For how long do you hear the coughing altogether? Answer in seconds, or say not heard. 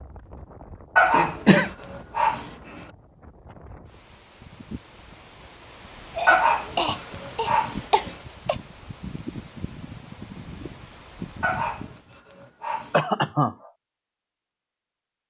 4 s.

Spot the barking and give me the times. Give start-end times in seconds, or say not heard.
0.9-2.9, 6.2-8.2, 11.4-13.1.